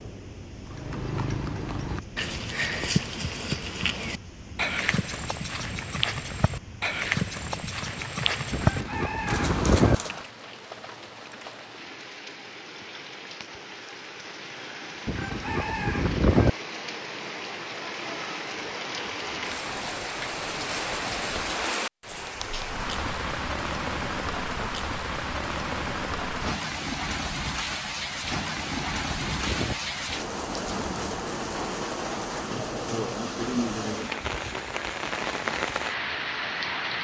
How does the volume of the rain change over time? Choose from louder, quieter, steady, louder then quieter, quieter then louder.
louder.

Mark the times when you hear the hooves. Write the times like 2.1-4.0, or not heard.
0.7-10.3.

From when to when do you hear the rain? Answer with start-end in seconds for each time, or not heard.
0.0-36.9.